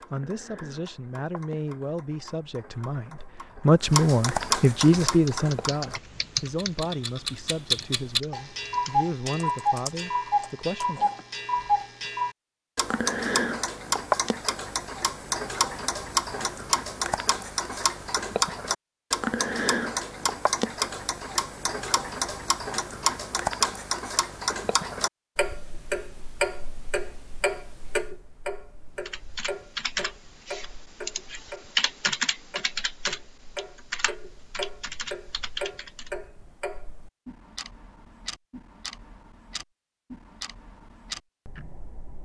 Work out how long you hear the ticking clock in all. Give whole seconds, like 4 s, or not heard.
42 s.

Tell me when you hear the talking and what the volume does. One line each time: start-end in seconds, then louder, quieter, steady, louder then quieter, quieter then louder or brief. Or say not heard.
0.1-11.1 louder then quieter.